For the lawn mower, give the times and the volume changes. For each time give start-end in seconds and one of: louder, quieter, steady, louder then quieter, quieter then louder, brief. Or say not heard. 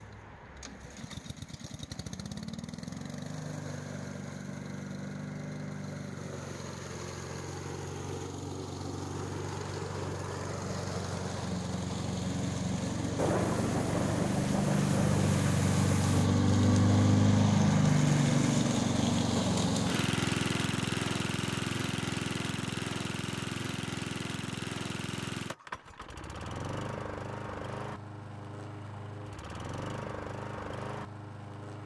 0.0-31.8 louder then quieter.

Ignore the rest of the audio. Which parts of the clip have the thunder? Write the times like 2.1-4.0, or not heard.
13.2-16.3.